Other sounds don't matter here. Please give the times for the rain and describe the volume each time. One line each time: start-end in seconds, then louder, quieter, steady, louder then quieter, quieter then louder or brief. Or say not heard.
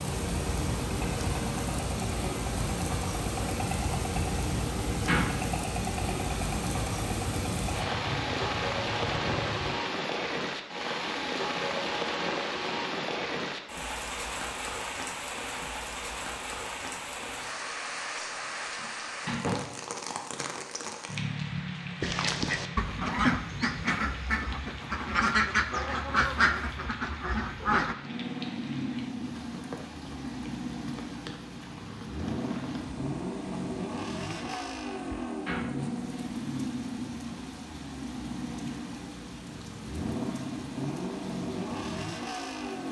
0.0-42.8 quieter.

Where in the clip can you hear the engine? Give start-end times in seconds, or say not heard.
0.0-9.8, 27.9-42.8.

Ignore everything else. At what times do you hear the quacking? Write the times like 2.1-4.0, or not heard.
22.0-27.9.